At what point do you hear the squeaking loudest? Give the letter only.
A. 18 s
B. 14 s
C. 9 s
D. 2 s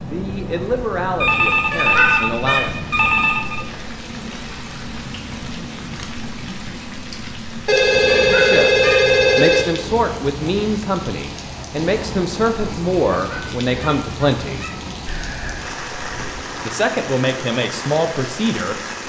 D.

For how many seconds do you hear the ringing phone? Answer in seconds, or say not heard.
6 s.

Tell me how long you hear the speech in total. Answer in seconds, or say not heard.
11 s.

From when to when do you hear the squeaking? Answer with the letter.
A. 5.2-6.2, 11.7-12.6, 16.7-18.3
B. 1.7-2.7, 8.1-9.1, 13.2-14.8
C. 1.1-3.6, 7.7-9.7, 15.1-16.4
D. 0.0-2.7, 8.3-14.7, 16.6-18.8
B.